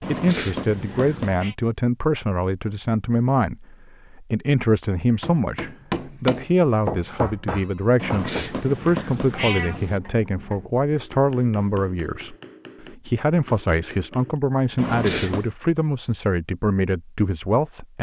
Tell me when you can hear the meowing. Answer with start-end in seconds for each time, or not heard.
0.0-1.6, 8.0-10.0, 14.8-15.6.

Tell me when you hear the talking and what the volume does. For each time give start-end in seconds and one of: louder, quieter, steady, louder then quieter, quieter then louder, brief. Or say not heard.
0.1-17.9 steady.